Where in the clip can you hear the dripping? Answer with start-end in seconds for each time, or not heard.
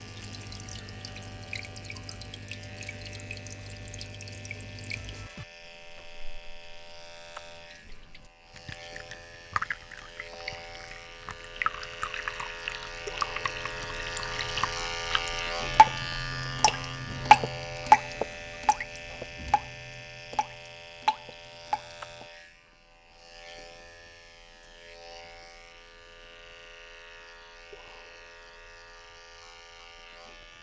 0.0-22.2.